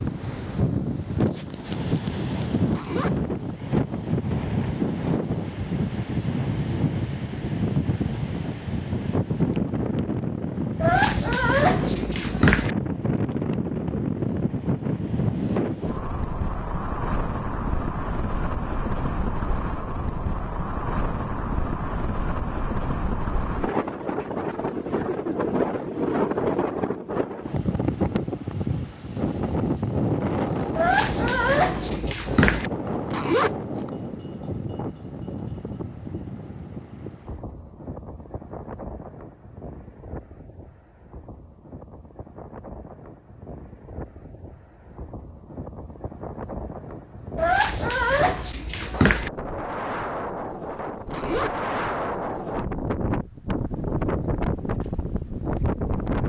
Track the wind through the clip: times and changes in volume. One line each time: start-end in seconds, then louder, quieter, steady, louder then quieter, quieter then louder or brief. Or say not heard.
0.0-56.2 quieter then louder.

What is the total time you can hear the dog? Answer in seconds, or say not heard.
6 s.